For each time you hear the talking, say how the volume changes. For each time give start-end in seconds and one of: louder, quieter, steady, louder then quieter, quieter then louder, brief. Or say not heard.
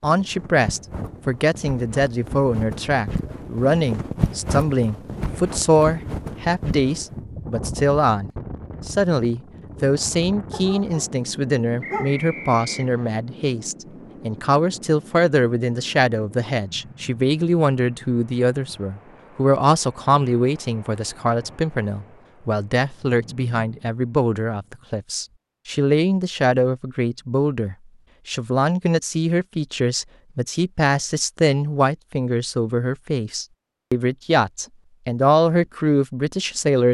0.0-36.8 steady.